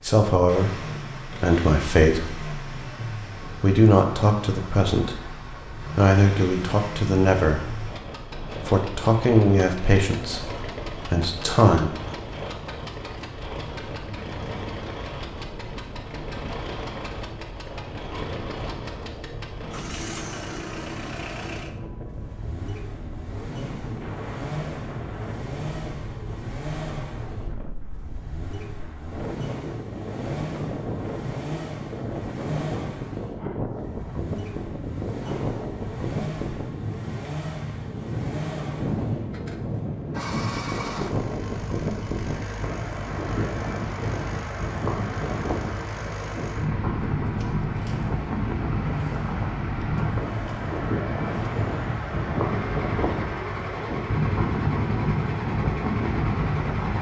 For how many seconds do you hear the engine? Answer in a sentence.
You can hear the engine for 57 seconds altogether.